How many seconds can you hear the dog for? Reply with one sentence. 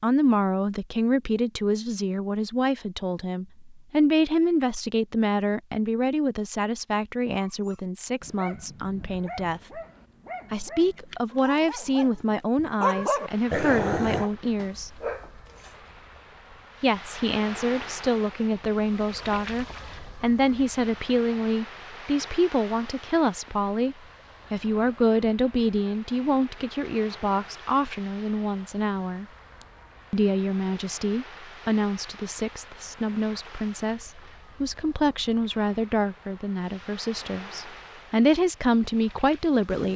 The dog can be heard for 8 seconds in total.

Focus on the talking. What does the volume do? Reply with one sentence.
The loudness of the talking stays about the same.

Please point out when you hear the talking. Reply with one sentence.
The talking can be heard from 0.0 to 9.8 s, from 10.5 to 15.0 s, from 16.8 to 29.2 s and from 30.1 to 39.9 s.